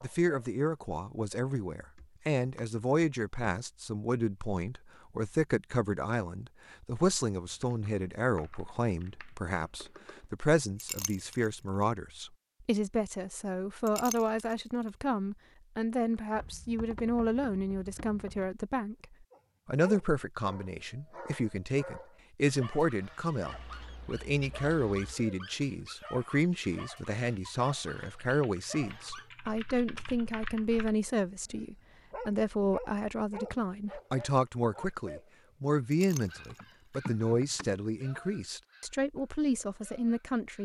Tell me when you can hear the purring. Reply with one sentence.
The purring can't be heard in this clip.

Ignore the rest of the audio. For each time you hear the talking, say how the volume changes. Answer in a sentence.
You can hear the talking from 0.0 to 19.1 s, at a steady volume; and from 19.6 to 40.6 s, at a steady volume.